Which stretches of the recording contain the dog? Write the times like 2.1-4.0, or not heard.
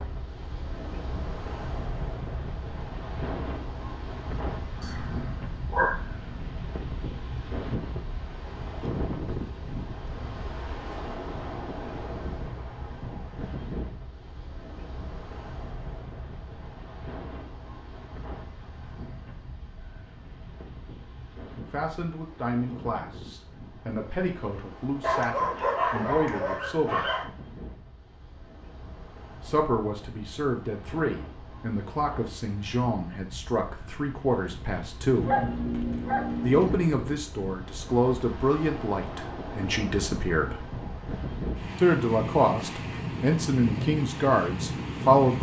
4.8-6.3, 25.0-27.3, 35.1-36.8.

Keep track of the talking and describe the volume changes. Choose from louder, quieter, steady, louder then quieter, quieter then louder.
louder.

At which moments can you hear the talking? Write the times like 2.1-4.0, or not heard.
21.7-27.1, 29.4-35.4, 36.4-40.6, 41.8-45.3.